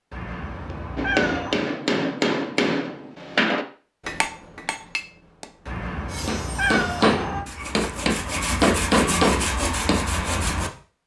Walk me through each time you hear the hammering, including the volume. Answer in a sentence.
You can hear the hammering from 0.9 to 10.0 s, getting quieter then louder.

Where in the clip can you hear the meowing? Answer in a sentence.
The meowing can be heard from 0.1 to 1.6 s and from 5.7 to 7.5 s.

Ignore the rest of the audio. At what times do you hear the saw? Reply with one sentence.
The saw can be heard from 6.0 to 11.0 s.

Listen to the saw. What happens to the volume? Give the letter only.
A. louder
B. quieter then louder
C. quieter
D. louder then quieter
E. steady
A.